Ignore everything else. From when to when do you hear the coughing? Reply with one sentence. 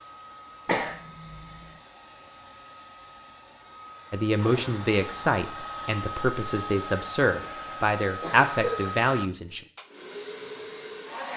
You can hear the coughing from 0.7 to 1.8 s and from 7.4 to 8.8 s.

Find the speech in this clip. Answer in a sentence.
The speech can be heard from 4.1 to 9.6 s.